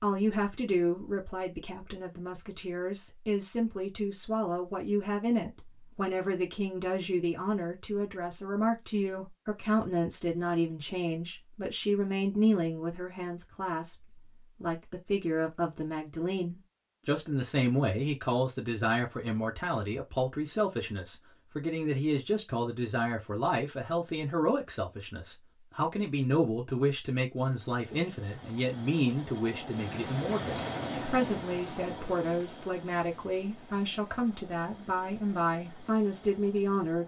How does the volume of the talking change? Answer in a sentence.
The loudness of the talking stays about the same.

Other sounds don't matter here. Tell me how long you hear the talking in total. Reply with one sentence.
You can hear the talking for 37 seconds altogether.